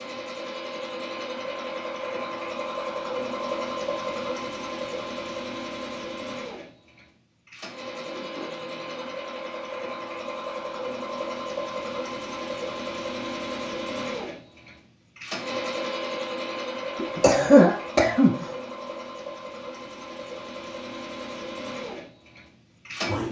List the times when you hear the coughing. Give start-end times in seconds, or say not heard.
16.9-18.4.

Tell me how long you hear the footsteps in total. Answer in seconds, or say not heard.
not heard.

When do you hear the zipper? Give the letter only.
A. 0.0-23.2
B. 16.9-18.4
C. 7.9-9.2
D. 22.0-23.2
C.